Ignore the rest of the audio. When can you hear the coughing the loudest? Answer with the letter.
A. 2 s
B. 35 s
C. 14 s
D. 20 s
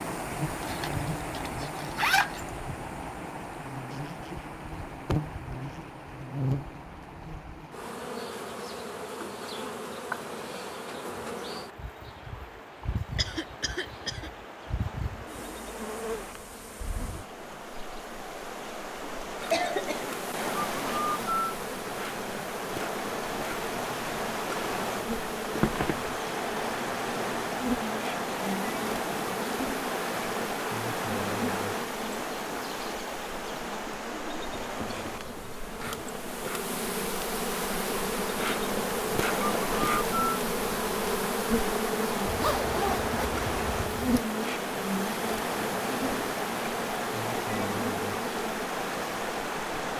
D.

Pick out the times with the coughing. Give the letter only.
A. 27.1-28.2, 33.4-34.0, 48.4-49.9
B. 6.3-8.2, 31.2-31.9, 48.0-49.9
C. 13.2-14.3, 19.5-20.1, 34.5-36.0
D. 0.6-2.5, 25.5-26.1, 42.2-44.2
C.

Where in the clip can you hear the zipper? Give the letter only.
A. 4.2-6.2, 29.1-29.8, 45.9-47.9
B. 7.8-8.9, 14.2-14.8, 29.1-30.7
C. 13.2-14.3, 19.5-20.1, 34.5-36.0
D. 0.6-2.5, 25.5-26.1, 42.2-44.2
D.